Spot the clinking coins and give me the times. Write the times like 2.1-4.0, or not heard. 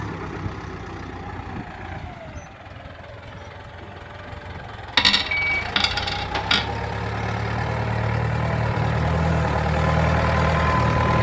5.0-6.7.